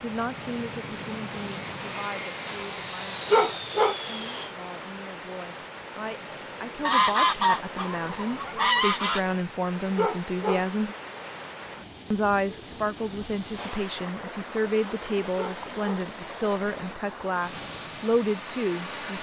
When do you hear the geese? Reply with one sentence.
The geese can be heard from 6.8 to 9.2 s.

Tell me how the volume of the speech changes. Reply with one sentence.
The volume of the speech goes up.